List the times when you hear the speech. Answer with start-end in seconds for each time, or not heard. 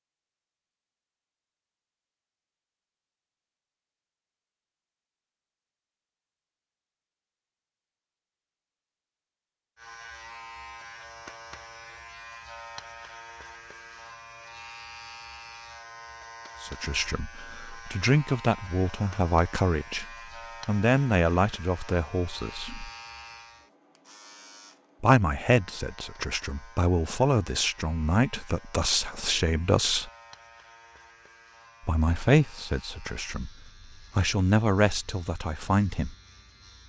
16.6-20.1, 20.6-22.9, 25.0-30.1, 31.9-33.5, 34.1-36.1.